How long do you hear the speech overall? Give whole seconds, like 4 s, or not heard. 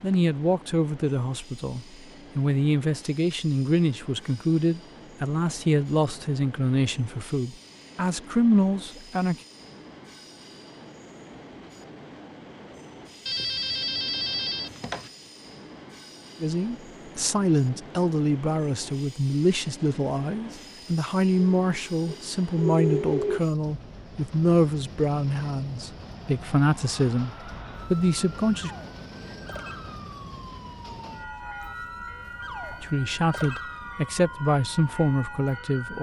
25 s.